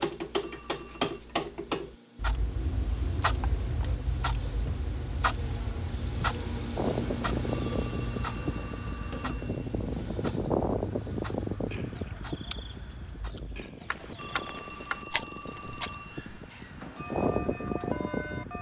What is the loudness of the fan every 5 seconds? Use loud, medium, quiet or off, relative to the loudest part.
off, loud, loud, loud.